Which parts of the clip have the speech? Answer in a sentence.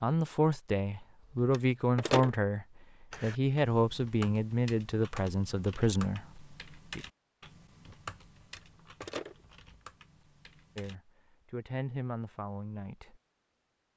The speech can be heard from 0.0 to 7.0 s and from 10.8 to 13.2 s.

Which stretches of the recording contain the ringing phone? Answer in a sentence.
You can hear the ringing phone from 1.5 to 2.3 s and from 8.4 to 9.3 s.